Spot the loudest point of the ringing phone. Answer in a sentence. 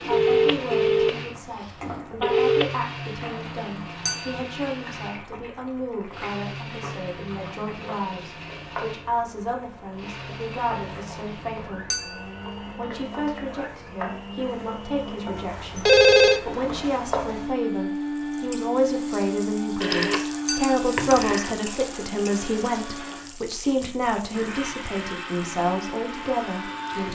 The loudest moment of the ringing phone is at 16 seconds.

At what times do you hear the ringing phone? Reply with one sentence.
You can hear the ringing phone from 0.1 to 1.1 s, from 2.2 to 2.6 s, from 15.8 to 16.4 s, from 19.8 to 20.2 s and from 20.9 to 21.6 s.